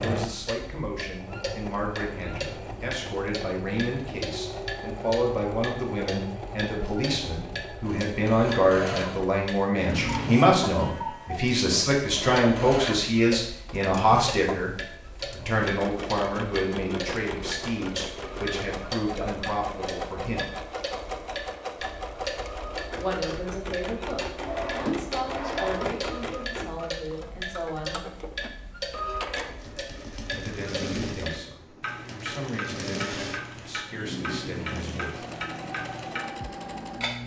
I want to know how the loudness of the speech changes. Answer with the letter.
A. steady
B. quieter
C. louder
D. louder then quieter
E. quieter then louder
D.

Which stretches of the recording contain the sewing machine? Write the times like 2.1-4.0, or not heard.
0.0-37.2.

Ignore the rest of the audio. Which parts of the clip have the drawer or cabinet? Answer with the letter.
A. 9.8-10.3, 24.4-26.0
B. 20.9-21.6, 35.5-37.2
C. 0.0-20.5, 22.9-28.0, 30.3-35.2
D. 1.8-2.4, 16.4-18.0
A.